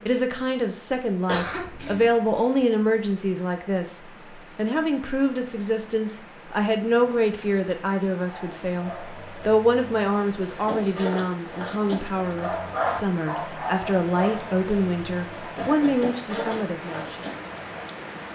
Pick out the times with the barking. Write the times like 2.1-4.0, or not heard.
8.2-17.9.